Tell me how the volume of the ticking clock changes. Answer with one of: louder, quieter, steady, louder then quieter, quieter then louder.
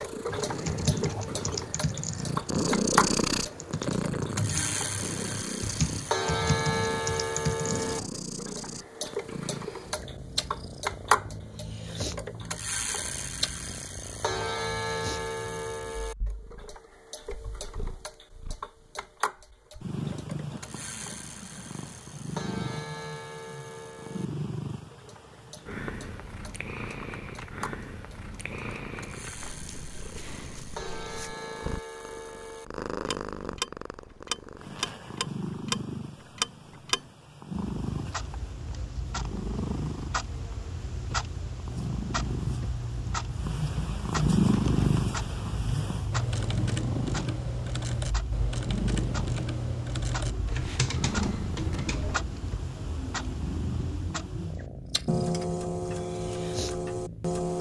quieter then louder.